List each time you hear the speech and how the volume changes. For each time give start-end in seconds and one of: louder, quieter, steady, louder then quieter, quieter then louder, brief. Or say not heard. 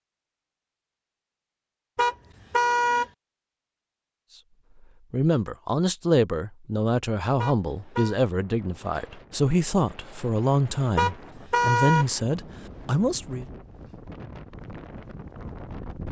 5.1-13.4 steady.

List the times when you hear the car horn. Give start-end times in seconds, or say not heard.
1.9-3.0, 7.3-8.2, 10.9-12.1.